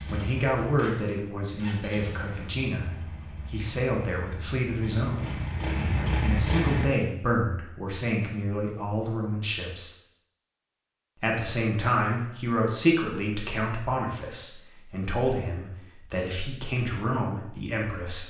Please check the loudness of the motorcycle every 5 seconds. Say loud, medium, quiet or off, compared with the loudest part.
quiet, loud, off, off.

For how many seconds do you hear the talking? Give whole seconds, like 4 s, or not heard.
16 s.